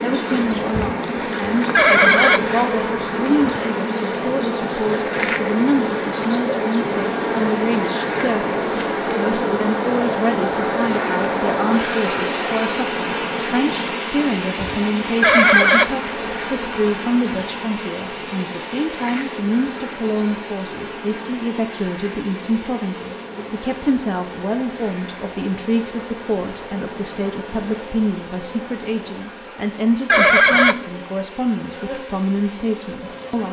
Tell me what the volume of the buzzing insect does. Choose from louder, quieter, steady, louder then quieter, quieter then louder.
quieter.